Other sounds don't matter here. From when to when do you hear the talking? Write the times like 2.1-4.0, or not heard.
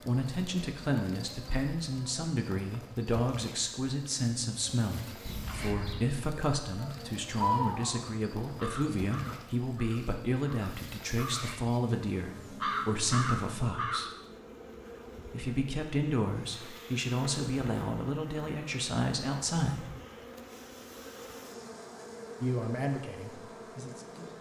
0.1-14.1, 15.2-19.9, 22.4-24.3.